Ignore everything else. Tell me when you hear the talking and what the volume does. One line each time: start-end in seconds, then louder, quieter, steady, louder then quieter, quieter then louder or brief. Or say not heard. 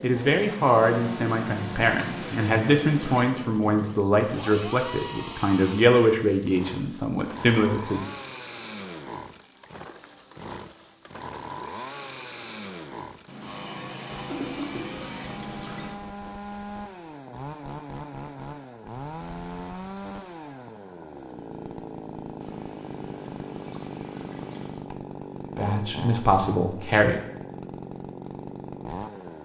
0.0-8.1 steady
25.6-27.2 brief.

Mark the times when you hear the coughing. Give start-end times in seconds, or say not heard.
14.1-15.2.